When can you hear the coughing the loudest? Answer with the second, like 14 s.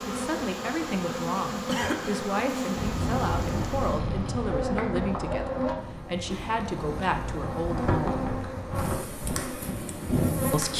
2 s.